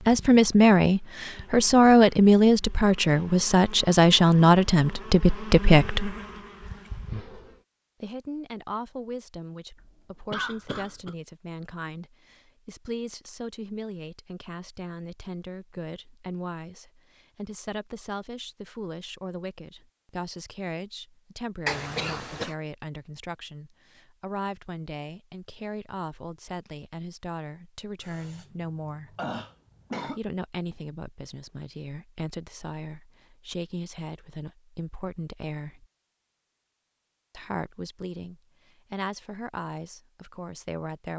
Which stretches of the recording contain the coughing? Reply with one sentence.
You can hear the coughing from 9.8 to 11.2 s, from 21.6 to 22.6 s and from 28.0 to 30.2 s.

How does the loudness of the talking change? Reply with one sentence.
The loudness of the talking goes down.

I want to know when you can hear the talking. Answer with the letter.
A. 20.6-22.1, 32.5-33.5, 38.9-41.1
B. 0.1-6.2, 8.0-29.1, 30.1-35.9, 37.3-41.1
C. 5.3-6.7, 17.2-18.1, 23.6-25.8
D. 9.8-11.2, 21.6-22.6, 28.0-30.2
B.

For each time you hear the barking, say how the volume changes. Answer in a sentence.
You can't hear the barking here.